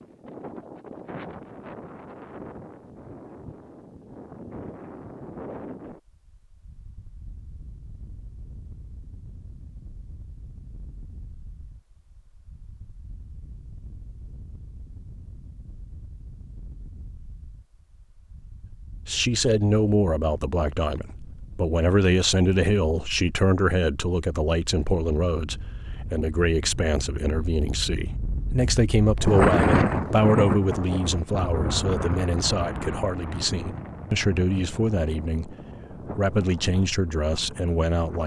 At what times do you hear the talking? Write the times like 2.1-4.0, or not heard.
19.1-35.5, 36.1-38.2.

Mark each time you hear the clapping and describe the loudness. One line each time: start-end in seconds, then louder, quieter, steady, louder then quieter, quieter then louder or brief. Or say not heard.
not heard.